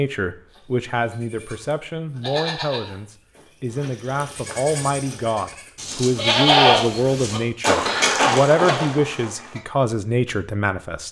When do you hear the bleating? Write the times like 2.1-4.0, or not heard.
0.6-9.6.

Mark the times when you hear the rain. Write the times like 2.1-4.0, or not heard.
not heard.